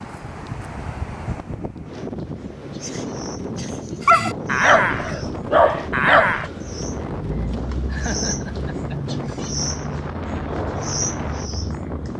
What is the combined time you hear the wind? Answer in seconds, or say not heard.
12 s.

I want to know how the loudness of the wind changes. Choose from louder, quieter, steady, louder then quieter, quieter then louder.
steady.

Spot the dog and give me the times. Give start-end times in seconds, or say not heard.
4.0-6.5.